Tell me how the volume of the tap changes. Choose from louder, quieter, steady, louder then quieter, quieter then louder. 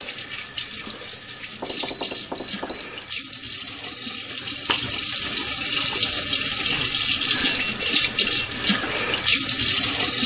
louder.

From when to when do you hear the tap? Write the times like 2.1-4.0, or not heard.
0.0-10.2.